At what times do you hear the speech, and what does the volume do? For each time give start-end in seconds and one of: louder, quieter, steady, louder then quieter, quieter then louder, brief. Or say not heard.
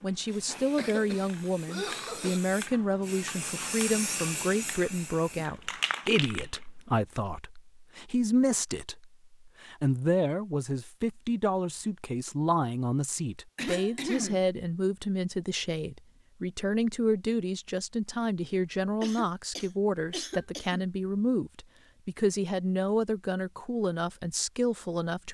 0.0-25.2 steady.